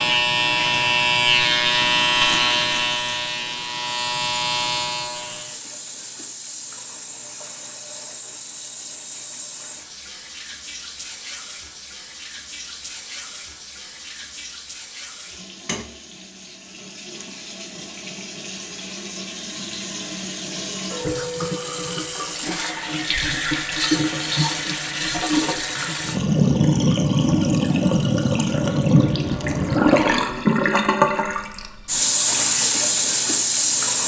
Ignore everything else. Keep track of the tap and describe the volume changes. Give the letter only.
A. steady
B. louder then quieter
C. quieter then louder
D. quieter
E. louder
E.